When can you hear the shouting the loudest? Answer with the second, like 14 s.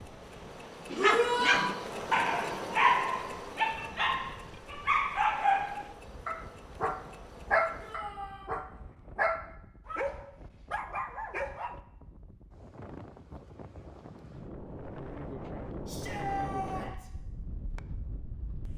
1 s.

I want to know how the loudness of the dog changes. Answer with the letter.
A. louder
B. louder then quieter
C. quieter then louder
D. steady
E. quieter
E.